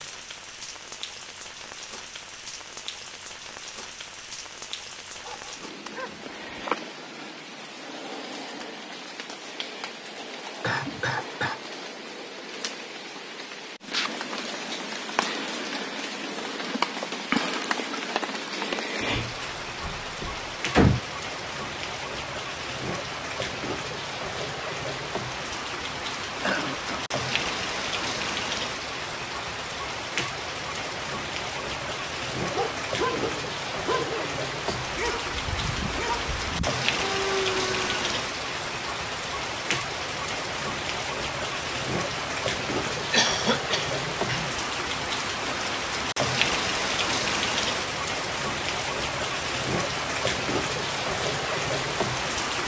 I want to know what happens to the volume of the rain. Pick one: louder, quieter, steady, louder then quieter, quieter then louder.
louder.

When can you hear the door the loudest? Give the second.
21 s.